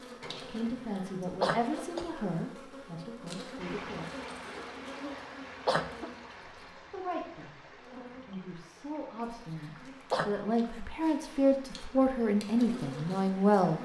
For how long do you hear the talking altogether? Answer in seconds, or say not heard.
10 s.